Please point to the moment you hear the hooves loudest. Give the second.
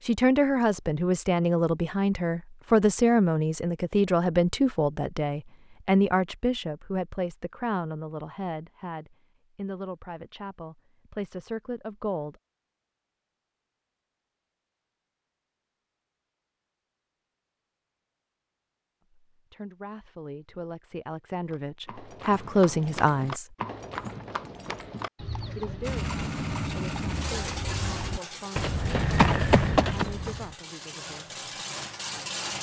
29 s.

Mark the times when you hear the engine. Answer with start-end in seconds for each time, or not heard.
25.8-32.5.